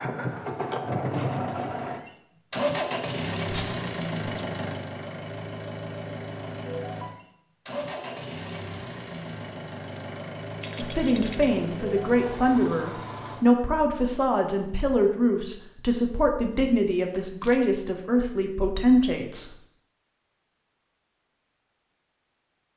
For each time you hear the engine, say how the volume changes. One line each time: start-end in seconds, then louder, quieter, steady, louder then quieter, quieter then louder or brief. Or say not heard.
0.0-13.4 quieter.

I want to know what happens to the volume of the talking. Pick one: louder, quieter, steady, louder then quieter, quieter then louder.
steady.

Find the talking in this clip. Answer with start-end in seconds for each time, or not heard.
10.8-19.5.